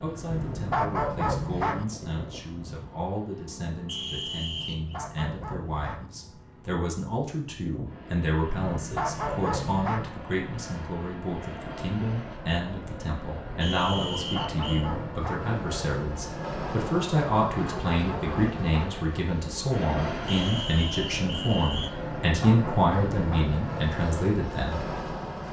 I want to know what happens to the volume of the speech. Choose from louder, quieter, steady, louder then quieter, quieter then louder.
louder.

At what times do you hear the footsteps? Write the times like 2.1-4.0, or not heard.
not heard.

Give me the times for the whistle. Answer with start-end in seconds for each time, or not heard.
3.9-5.0, 13.6-14.9, 20.2-21.9.